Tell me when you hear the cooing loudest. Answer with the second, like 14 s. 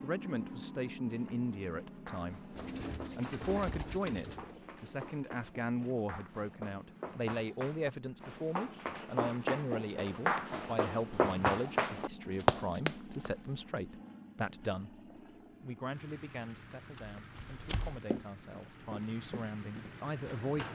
4 s.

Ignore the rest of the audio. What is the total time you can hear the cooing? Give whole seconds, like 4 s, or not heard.
3 s.